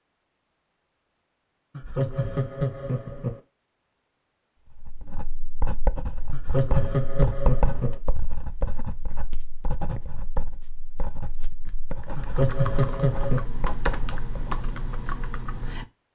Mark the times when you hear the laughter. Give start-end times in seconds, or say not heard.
1.8-3.4, 6.3-8.0, 12.2-13.4.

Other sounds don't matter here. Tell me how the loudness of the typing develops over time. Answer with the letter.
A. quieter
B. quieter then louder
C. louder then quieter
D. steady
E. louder
D.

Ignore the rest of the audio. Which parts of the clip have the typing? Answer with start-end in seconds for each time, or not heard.
12.0-16.1.